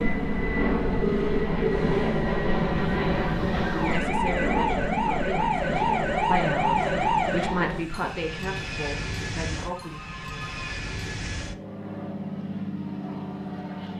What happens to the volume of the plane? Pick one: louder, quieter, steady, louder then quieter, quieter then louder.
quieter.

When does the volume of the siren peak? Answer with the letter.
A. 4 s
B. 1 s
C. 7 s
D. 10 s
C.